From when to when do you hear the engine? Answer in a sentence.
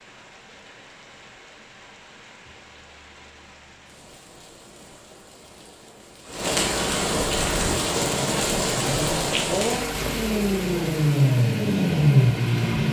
The engine can be heard from 7.3 to 12.8 s.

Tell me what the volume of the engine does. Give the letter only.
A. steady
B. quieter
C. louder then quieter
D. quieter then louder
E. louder
E.